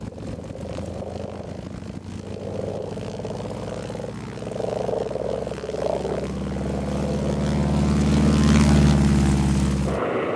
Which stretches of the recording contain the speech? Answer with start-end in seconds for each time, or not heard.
not heard.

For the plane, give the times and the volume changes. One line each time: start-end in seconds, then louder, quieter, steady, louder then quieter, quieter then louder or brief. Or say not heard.
0.0-10.3 louder.